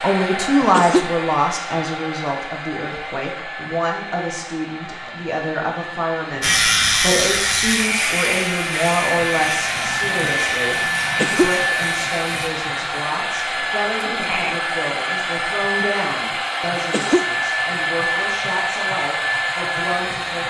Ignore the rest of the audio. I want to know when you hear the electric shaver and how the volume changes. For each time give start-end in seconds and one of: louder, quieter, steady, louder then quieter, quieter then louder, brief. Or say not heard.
6.4-12.5 quieter.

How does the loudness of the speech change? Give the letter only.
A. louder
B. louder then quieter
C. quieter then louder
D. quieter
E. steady
D.